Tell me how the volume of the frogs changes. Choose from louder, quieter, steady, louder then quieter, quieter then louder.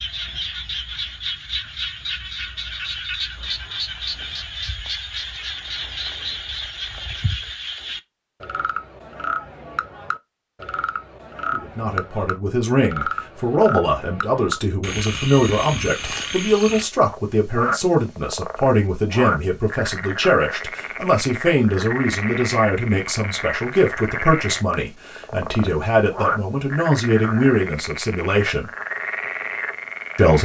steady.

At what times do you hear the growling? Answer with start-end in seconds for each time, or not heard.
not heard.